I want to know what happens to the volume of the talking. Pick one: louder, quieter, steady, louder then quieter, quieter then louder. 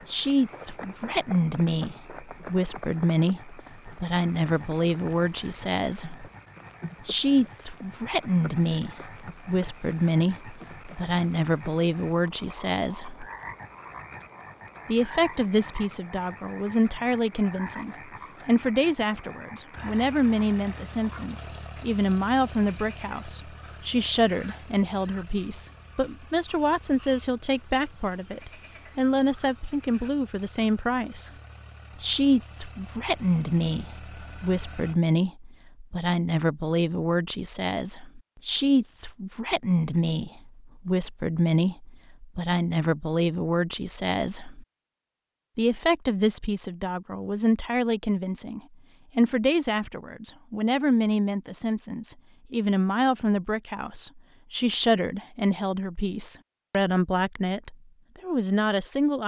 steady.